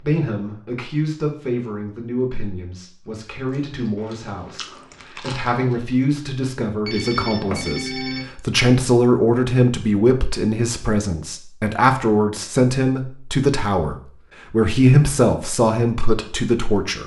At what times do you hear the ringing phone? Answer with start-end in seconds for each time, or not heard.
6.8-8.2.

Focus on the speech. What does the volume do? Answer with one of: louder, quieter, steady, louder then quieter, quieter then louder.
louder.